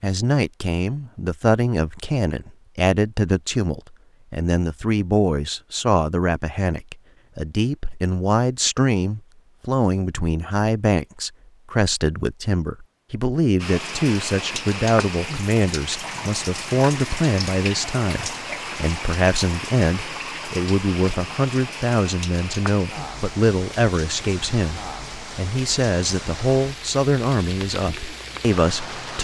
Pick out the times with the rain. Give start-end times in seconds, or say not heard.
13.6-29.1.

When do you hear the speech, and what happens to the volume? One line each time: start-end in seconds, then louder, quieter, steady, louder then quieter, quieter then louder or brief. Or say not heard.
0.0-29.1 steady.